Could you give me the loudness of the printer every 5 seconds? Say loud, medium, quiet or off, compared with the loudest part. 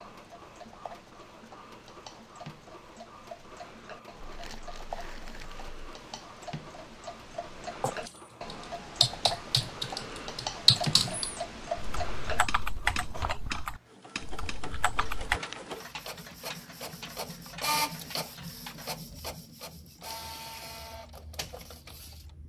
quiet, quiet, medium, loud, medium.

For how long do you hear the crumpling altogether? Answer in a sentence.
You can hear the crumpling for 2 seconds altogether.